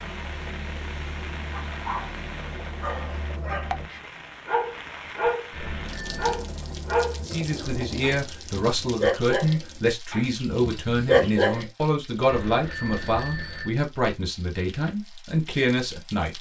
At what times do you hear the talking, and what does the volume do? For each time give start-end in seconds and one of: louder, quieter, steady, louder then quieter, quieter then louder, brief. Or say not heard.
7.2-16.3 steady.